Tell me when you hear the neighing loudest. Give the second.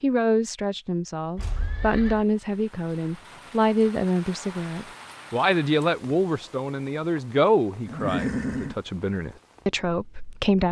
8 s.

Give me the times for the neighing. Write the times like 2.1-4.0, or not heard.
1.4-2.2, 7.8-8.8.